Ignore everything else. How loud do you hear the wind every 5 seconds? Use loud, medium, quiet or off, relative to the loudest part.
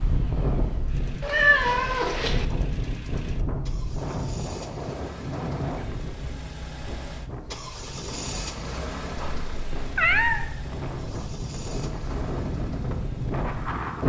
loud, medium, loud.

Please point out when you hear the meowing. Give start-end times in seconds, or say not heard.
1.2-2.5, 9.2-10.5.